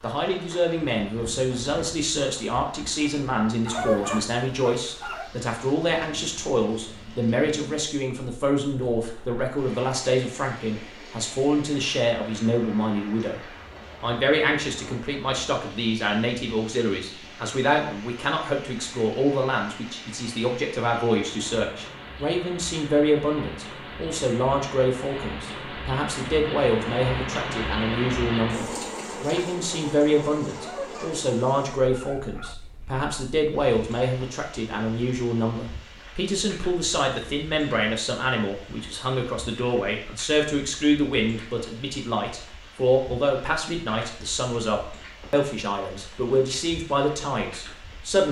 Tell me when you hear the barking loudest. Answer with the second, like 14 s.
4 s.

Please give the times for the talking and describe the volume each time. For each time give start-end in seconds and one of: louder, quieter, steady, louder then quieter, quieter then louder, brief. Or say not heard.
0.0-48.2 steady.